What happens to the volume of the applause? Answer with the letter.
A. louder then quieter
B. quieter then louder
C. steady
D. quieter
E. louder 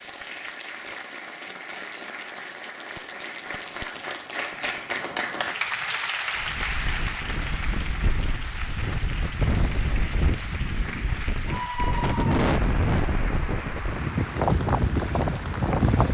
A.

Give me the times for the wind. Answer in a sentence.
You can hear the wind from 6.3 to 16.0 s.